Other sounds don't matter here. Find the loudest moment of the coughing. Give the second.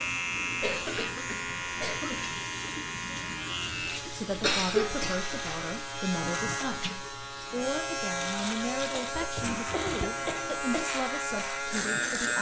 5 s.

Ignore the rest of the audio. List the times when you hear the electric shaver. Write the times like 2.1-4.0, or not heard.
0.0-12.3.